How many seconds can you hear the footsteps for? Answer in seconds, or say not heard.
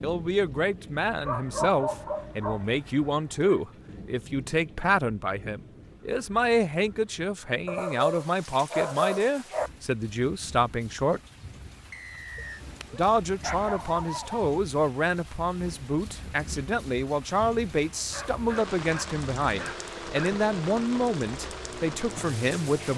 not heard.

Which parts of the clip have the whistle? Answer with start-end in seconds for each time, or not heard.
11.9-12.7.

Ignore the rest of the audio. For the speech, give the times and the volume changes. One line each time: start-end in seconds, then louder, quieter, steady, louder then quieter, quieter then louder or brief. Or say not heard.
0.0-11.2 steady
12.9-22.9 steady.